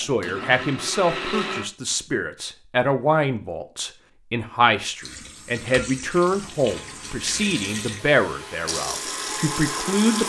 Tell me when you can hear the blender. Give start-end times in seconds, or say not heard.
0.0-1.7, 6.5-10.2.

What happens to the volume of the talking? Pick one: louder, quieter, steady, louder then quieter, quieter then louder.
steady.